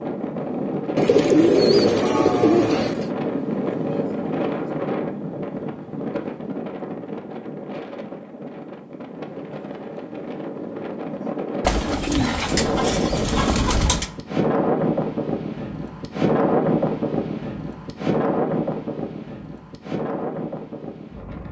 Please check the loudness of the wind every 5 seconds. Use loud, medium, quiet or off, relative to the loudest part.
loud, medium, loud, loud, medium.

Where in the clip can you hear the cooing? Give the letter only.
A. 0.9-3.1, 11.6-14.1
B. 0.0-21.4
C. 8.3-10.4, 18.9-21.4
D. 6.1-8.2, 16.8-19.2
A.